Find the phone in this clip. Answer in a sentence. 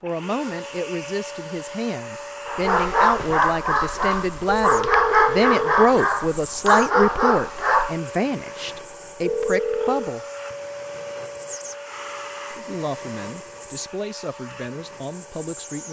You can hear the phone from 4.5 to 6.1 s and from 9.2 to 10.2 s.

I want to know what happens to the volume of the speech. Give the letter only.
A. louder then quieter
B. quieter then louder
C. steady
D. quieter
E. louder
A.